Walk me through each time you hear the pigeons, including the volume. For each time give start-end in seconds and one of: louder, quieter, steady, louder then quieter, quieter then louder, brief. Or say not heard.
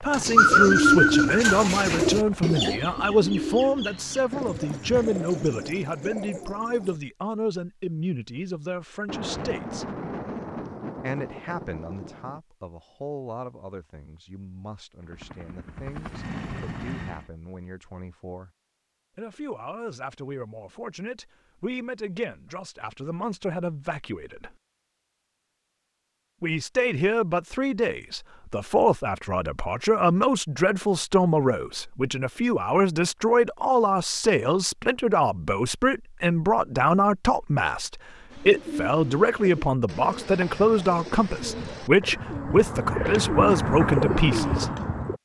0.1-7.0 quieter
38.3-45.2 louder.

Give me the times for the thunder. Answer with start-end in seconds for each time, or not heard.
9.1-12.4.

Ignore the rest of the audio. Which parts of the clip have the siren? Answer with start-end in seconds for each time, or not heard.
not heard.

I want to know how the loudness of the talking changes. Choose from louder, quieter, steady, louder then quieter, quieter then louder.
quieter then louder.